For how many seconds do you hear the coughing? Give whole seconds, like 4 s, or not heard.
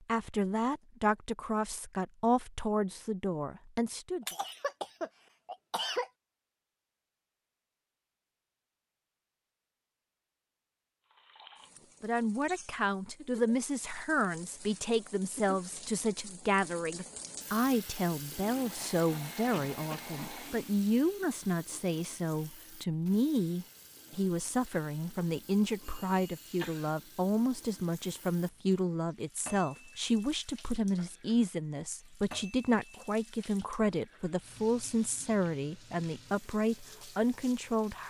4 s.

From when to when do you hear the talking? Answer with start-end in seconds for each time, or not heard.
0.1-4.2, 12.0-38.0.